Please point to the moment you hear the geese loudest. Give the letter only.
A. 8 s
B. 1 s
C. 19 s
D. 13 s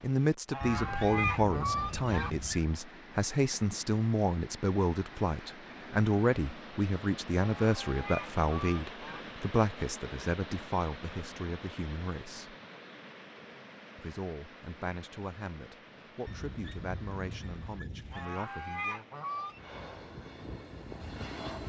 B.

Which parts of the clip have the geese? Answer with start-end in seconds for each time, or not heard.
0.5-2.3, 7.4-9.2, 18.1-19.8.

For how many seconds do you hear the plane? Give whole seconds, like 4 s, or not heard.
2 s.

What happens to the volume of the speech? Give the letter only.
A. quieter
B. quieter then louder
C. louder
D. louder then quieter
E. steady
A.